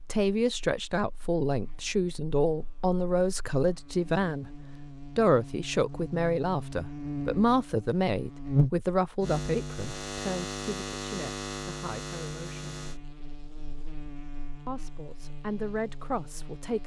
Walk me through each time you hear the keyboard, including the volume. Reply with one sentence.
The keyboard can't be heard in this clip.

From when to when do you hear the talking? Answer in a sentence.
You can hear the talking from 0.0 to 4.5 s, from 5.2 to 12.6 s and from 14.7 to 16.8 s.